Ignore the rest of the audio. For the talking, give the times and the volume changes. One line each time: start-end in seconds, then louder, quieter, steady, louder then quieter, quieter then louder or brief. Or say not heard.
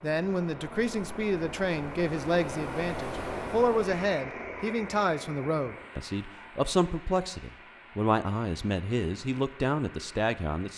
0.0-10.7 steady.